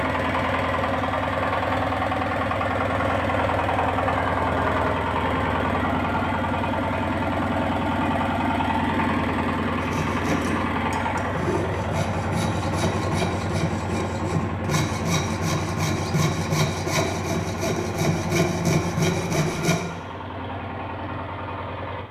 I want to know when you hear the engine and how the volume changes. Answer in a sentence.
The engine can be heard from 0.0 to 22.0 s, getting quieter.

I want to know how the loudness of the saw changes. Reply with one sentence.
The volume of the saw goes up.